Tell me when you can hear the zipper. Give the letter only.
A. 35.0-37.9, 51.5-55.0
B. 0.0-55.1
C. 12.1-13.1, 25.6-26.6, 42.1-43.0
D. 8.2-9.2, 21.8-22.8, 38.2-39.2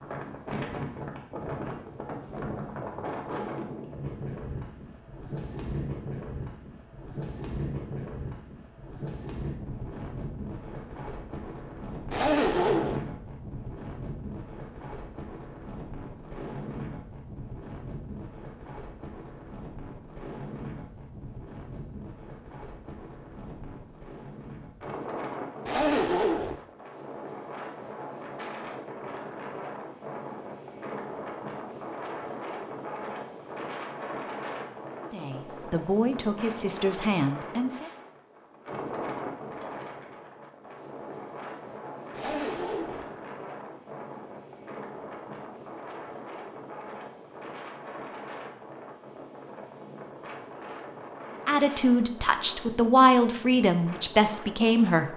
C.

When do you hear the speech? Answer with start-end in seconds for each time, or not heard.
35.0-37.9, 51.5-55.0.